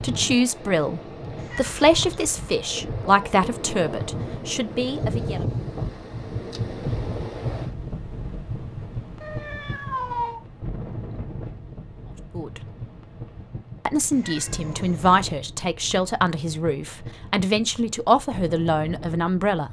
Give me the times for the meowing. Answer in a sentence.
You can hear the meowing from 1.4 to 2.5 s, from 9.2 to 10.4 s and from 14.1 to 15.2 s.